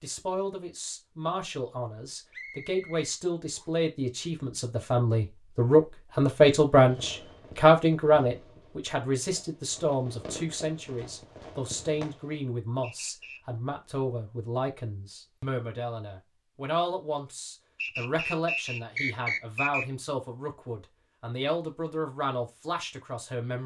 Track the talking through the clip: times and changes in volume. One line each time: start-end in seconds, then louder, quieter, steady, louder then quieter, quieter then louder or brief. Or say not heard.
0.0-23.6 louder then quieter.